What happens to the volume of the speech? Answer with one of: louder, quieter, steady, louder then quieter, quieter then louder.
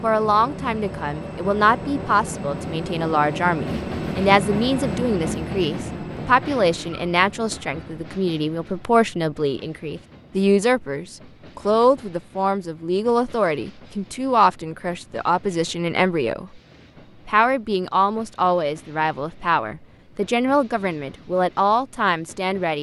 steady.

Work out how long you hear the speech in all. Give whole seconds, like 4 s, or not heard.
22 s.